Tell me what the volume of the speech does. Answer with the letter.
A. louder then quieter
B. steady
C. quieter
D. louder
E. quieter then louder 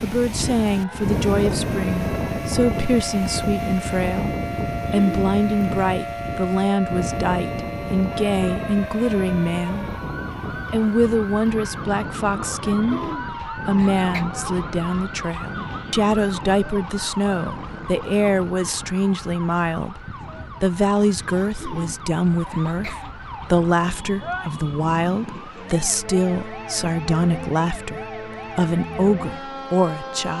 B.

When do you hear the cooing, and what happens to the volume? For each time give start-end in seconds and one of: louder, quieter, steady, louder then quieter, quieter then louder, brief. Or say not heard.
not heard.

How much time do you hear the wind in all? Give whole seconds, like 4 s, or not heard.
26 s.